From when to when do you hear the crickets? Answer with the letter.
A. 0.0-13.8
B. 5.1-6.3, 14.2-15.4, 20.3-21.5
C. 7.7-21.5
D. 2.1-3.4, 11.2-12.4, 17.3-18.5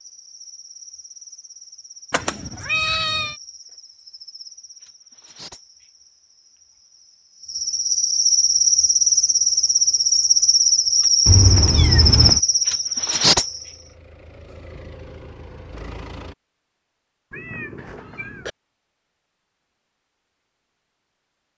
A.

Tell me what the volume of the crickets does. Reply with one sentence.
The volume of the crickets goes up.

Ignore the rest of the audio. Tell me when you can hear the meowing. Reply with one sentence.
The meowing can be heard from 2.1 to 3.4 s, from 11.2 to 12.4 s and from 17.3 to 18.5 s.